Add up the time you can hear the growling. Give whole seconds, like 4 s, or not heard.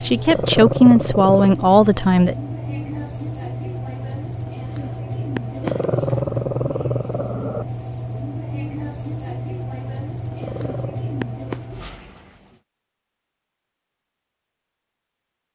4 s.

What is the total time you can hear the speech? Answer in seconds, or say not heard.
2 s.